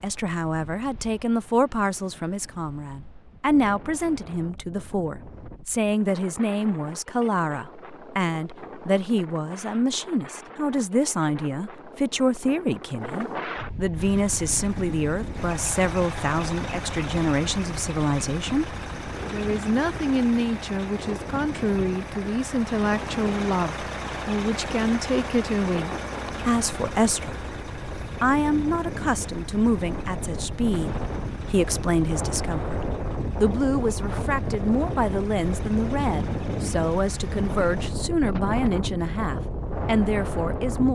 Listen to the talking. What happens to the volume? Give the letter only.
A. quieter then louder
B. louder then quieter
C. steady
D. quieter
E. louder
C.